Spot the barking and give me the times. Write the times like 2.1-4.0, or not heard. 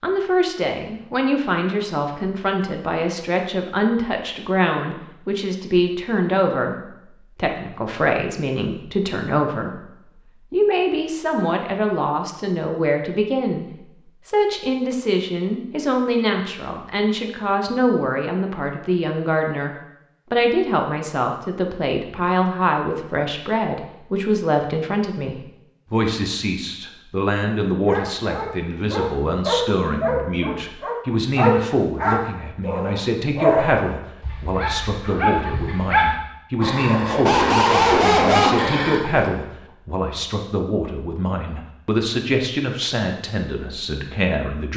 27.9-39.3.